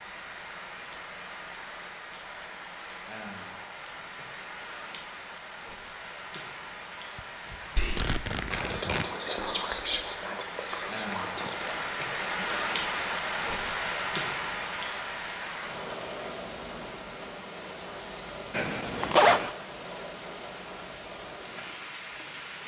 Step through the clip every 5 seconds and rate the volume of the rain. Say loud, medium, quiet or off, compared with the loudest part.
medium, medium, loud, medium, medium.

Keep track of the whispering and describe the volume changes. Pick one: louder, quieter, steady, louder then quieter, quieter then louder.
quieter.